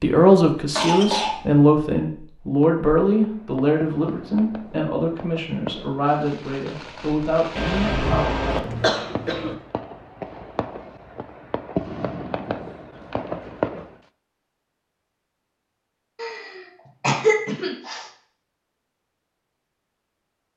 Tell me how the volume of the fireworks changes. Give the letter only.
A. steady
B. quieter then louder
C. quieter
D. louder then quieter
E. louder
E.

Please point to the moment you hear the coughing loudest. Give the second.
17 s.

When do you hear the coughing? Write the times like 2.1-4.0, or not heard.
0.8-1.4, 7.5-9.6, 16.1-18.1.